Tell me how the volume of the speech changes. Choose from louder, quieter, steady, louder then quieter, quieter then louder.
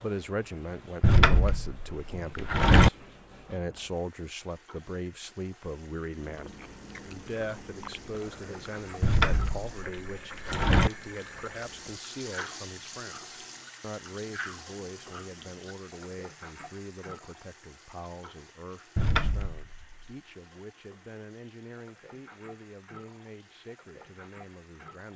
quieter.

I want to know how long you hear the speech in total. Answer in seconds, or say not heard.
25 s.